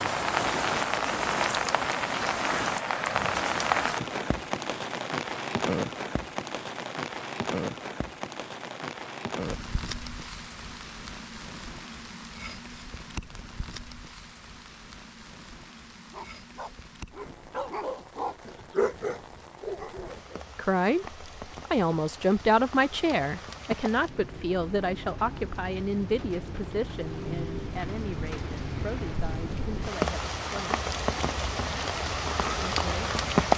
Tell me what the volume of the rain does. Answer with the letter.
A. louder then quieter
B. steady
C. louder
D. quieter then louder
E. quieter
D.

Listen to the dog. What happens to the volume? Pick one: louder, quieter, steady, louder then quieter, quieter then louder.
louder then quieter.